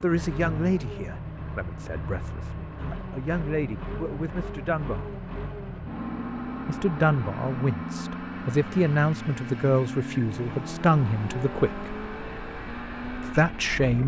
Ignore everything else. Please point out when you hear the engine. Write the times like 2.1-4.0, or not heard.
0.0-14.0.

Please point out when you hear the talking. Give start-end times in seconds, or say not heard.
0.0-5.1, 6.7-11.9, 13.2-14.0.